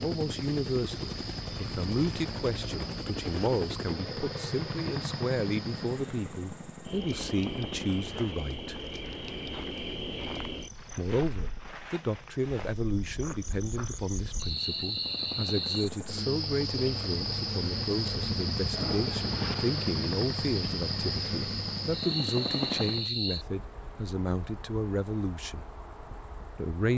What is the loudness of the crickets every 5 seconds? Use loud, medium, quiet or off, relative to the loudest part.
medium, medium, medium, loud, loud, quiet.